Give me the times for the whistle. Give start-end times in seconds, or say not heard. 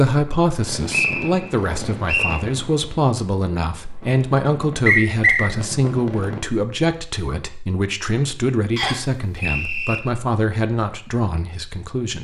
0.9-2.4, 4.8-5.5, 8.8-10.0.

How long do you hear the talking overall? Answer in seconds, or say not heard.
12 s.